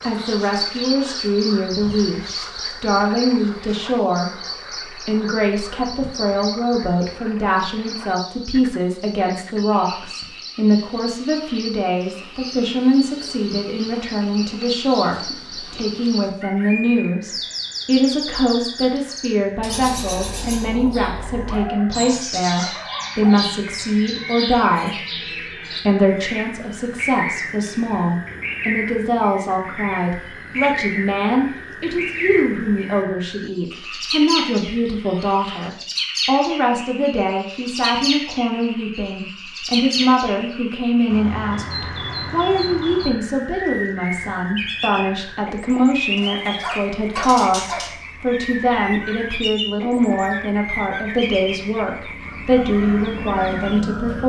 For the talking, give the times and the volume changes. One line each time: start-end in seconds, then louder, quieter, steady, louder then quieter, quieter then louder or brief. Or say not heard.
0.0-2.2 brief
2.8-4.3 brief
4.9-24.9 steady
25.9-54.2 steady.